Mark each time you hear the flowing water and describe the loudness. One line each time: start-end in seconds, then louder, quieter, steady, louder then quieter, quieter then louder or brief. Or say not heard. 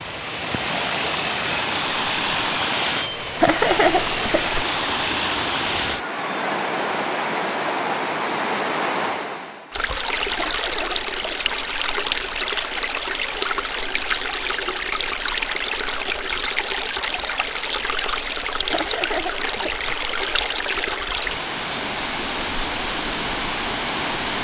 0.0-24.4 steady.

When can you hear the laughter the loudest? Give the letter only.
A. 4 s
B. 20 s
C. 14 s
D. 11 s
A.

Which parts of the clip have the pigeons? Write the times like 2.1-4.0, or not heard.
not heard.